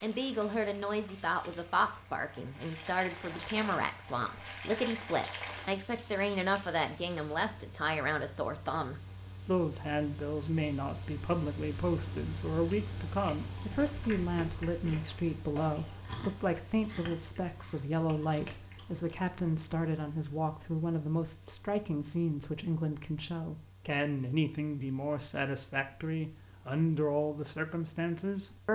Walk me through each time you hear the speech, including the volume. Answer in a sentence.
The speech can be heard from 0.0 to 28.7 s, at a steady volume.